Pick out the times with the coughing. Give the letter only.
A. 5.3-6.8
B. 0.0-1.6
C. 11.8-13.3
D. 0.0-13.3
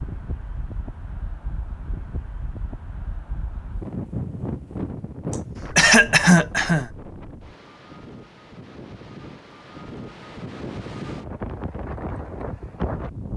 A.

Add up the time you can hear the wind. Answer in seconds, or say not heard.
13 s.